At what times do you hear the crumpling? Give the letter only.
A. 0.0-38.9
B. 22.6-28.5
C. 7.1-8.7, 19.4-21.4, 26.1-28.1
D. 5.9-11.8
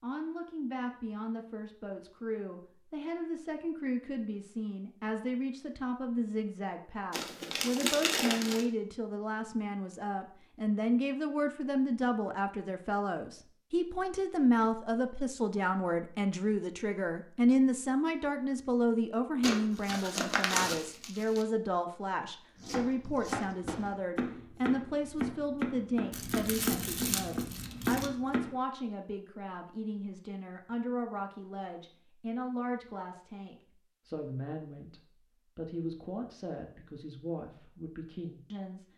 C.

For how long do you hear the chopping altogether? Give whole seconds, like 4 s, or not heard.
6 s.